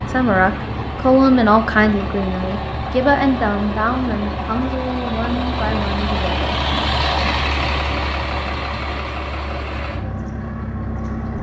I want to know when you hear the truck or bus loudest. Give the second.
7 s.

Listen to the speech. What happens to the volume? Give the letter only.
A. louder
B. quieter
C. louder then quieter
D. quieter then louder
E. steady
B.